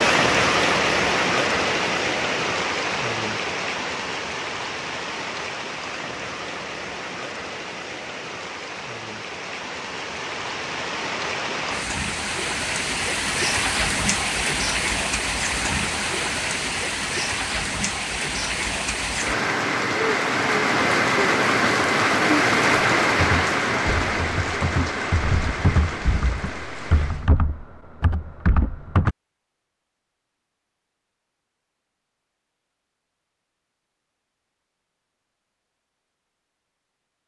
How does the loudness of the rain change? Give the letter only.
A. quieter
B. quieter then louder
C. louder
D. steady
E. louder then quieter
B.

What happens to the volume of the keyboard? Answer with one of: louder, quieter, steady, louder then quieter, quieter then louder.
louder.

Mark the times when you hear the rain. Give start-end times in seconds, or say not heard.
0.0-27.3.